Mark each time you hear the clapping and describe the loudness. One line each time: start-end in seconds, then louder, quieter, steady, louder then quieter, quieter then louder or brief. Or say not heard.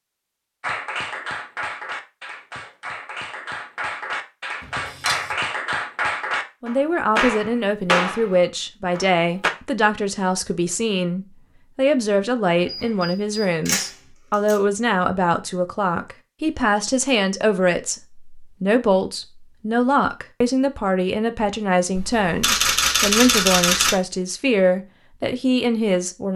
0.6-9.5 louder.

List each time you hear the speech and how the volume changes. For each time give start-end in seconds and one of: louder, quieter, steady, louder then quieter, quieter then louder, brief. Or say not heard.
6.6-26.3 steady.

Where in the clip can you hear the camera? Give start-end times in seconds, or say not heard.
4.6-5.3, 12.6-14.6, 21.9-23.9.